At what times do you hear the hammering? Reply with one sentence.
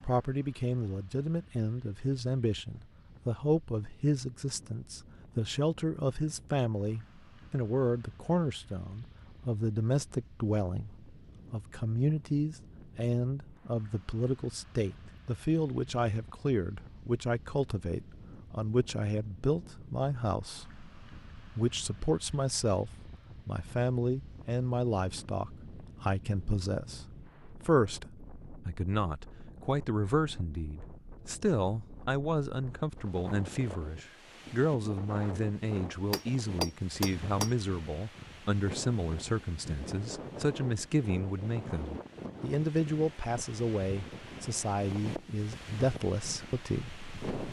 You can hear the hammering from 36.1 to 37.5 s.